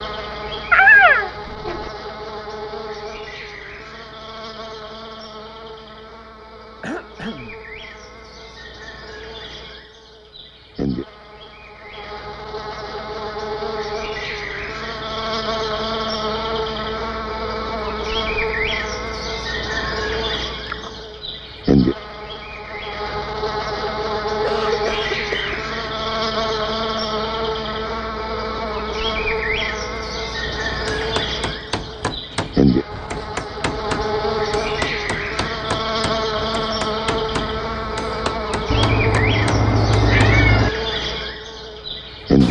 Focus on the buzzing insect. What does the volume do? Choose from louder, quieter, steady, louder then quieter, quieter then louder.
louder.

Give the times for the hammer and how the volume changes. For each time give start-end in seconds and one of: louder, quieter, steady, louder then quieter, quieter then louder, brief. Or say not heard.
30.4-40.4 steady.